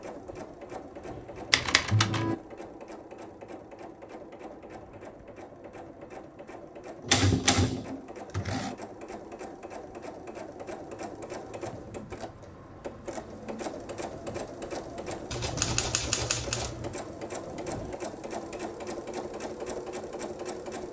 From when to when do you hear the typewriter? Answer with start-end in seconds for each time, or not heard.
1.5-2.4, 7.0-8.8, 15.3-16.9.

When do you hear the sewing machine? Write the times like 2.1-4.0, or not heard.
0.0-20.8.